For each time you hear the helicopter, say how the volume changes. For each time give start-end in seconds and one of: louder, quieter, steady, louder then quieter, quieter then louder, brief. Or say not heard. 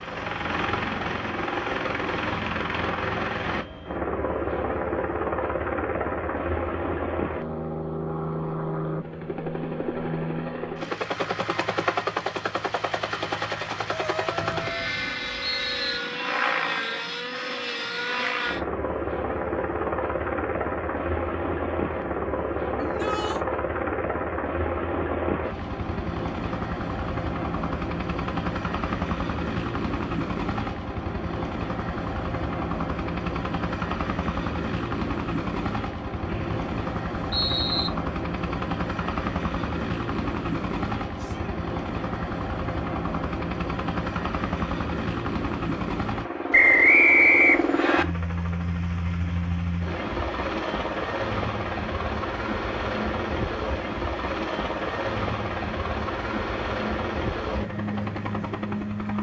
0.0-59.1 steady.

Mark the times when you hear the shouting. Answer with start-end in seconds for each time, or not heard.
13.8-14.9, 22.8-23.4, 41.1-41.6.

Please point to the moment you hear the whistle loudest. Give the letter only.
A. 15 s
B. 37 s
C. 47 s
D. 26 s
C.